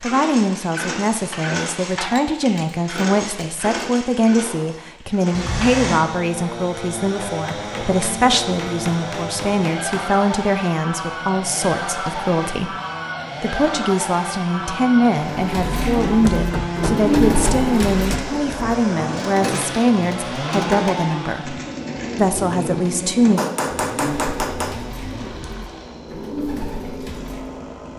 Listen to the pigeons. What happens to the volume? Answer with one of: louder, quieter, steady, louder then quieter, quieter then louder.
quieter.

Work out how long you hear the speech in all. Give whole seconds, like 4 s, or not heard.
22 s.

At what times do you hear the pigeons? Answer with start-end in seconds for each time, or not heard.
15.3-27.6.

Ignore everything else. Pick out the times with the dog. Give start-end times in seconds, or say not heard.
not heard.